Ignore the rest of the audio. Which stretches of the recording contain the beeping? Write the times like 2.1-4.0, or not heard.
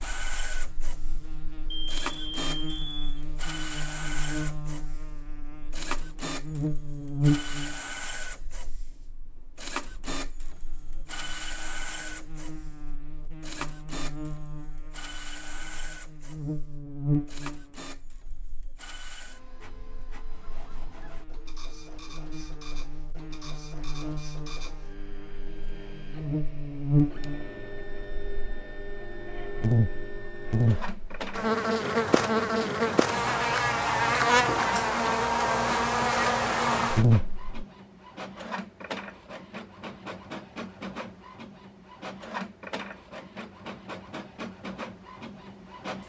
1.7-3.2.